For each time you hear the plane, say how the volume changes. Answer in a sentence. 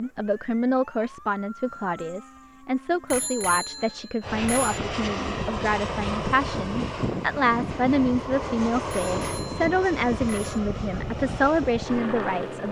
The plane can be heard from 4.2 to 12.6 s, at a steady volume.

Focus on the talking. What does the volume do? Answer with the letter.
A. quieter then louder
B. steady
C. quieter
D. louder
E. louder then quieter
B.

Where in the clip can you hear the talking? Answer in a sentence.
You can hear the talking from 0.0 to 12.6 s.